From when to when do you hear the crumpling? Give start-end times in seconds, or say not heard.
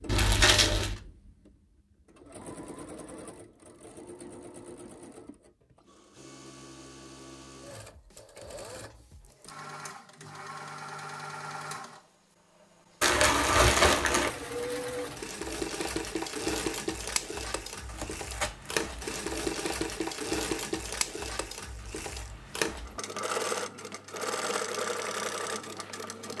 0.1-1.0, 13.0-14.3, 17.9-19.4.